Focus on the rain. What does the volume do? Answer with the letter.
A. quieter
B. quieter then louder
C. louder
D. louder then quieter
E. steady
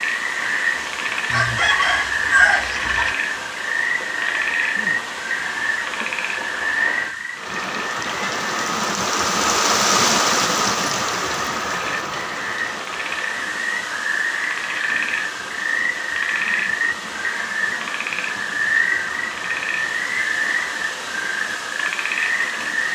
D.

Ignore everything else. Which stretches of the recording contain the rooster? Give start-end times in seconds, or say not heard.
1.3-3.1.